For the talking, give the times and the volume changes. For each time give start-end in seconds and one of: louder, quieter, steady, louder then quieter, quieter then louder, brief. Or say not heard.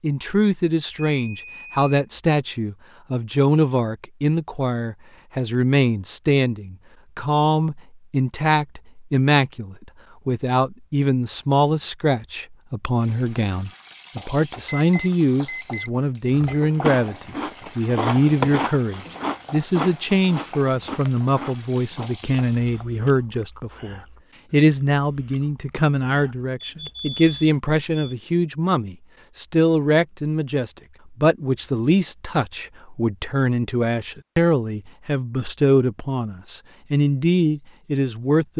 0.0-38.5 steady.